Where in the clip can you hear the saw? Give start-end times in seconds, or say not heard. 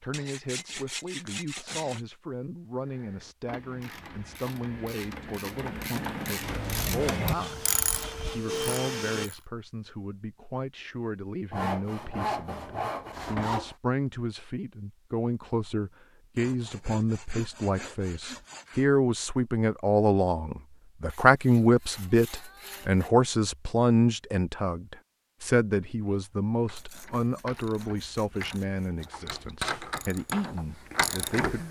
0.1-2.0, 6.6-8.4, 11.5-13.8, 16.4-18.9, 21.1-23.1, 26.8-29.1.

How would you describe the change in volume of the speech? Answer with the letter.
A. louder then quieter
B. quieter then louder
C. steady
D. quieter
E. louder
A.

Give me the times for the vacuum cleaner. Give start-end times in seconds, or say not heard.
7.4-9.3.